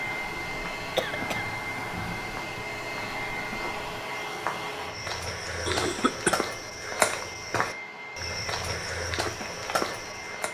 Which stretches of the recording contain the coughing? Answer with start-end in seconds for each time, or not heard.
0.9-1.4, 5.7-6.5.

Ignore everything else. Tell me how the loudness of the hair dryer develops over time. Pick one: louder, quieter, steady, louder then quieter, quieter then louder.
quieter.